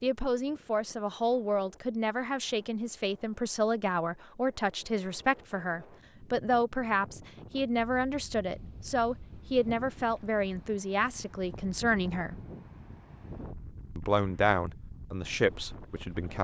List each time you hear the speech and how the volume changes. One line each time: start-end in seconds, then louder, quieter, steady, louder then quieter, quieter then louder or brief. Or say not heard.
0.0-12.4 steady
13.9-16.3 brief.